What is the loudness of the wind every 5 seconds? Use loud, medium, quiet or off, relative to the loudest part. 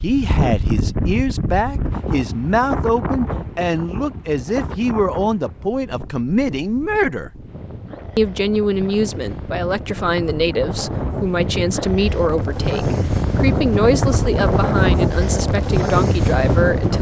medium, quiet, loud, loud.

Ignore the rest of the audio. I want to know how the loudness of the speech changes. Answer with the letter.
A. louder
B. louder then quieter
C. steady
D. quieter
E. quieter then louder
C.